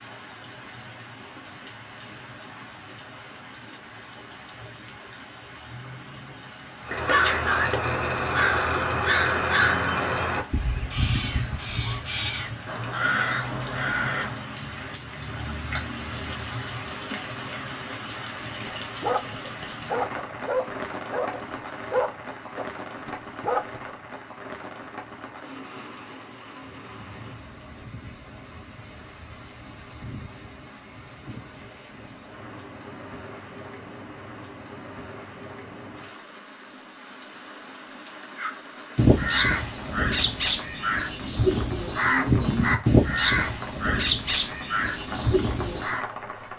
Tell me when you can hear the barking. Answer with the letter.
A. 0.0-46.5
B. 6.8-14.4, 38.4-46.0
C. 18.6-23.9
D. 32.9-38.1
C.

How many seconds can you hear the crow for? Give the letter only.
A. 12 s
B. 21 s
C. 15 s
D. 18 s
C.